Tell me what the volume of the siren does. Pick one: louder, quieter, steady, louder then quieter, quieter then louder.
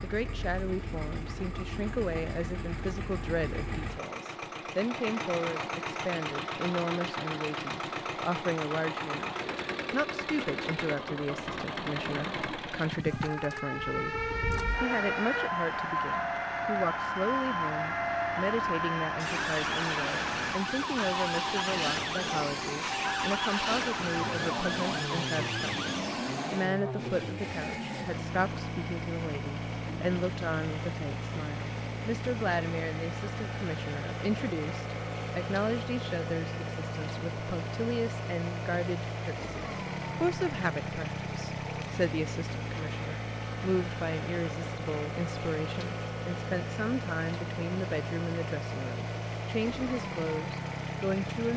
steady.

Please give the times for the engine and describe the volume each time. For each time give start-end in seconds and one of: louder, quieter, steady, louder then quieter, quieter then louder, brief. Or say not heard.
0.0-51.5 steady.